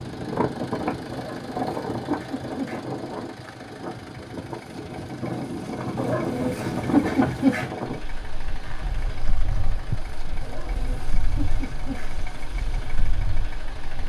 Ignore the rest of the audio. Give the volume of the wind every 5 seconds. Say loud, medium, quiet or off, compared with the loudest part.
loud, loud, medium.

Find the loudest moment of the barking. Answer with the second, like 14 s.
7 s.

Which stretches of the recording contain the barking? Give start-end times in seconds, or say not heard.
1.1-2.9, 6.0-7.7, 10.4-12.1.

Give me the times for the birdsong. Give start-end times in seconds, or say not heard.
not heard.